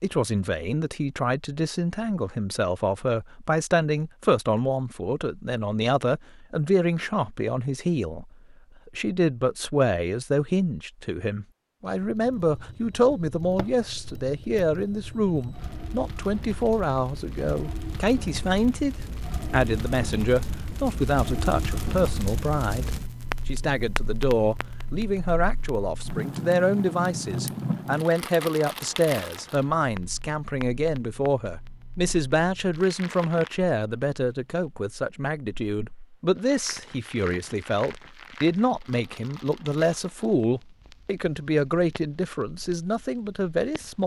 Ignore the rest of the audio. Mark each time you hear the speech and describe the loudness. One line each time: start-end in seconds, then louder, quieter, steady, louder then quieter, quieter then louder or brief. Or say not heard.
0.0-44.0 steady.